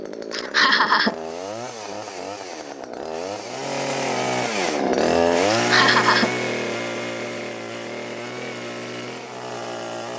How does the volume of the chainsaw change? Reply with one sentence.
The volume of the chainsaw goes up, then down.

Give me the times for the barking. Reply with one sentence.
The barking can't be heard in this clip.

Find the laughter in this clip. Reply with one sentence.
You can hear the laughter from 0.3 to 1.1 s and from 5.5 to 6.3 s.